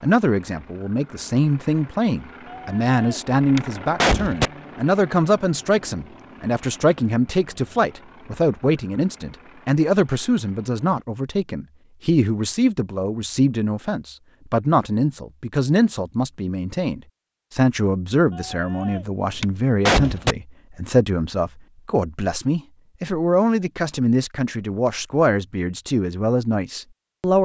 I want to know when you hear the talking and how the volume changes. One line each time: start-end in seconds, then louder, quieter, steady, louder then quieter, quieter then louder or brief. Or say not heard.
0.0-27.4 steady.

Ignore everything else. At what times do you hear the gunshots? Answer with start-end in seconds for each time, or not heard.
2.5-4.5, 18.4-20.4.